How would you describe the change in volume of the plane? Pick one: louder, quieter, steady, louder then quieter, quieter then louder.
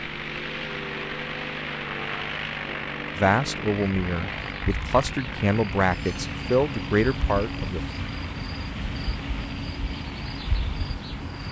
quieter.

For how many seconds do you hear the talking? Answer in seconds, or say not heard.
5 s.